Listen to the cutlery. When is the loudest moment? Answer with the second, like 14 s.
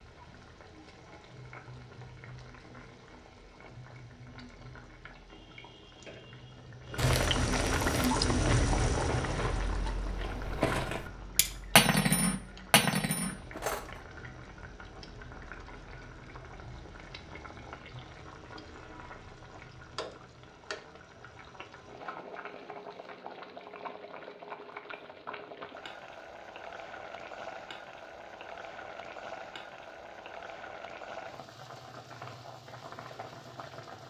12 s.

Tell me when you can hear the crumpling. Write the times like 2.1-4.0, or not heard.
7.0-8.1.